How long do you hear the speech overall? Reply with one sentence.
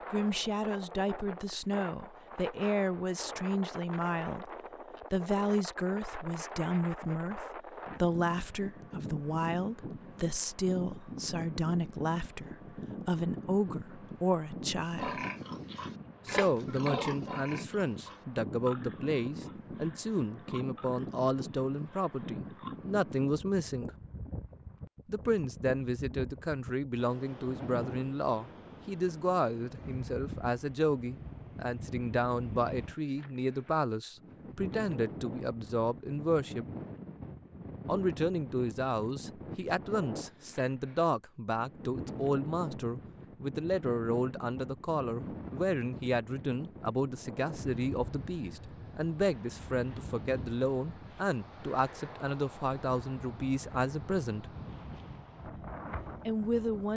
The speech can be heard for 51 seconds in total.